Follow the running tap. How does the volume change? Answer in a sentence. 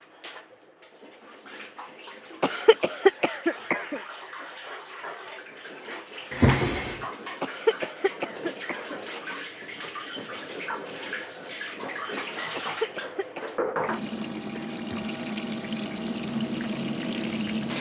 The loudness of the running tap goes up.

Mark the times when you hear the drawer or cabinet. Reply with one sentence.
The drawer or cabinet can be heard from 6.3 to 7.0 s.